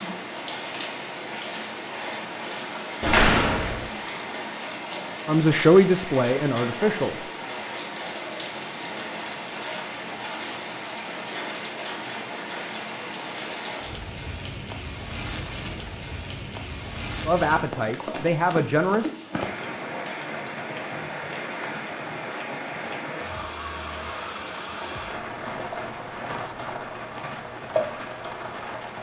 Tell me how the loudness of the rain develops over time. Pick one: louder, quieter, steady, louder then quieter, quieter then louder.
steady.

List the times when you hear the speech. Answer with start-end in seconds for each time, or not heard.
5.2-7.2, 17.2-19.1.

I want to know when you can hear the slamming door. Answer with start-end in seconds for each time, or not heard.
3.0-3.9.